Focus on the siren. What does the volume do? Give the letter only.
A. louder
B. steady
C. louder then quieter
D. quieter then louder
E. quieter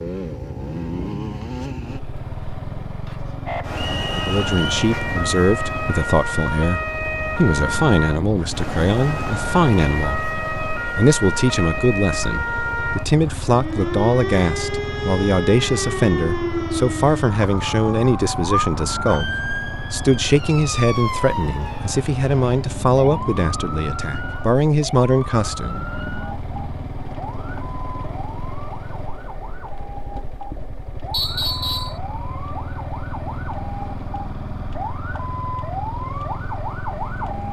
E.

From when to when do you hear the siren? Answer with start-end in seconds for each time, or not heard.
3.5-37.4.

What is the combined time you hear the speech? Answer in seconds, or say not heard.
22 s.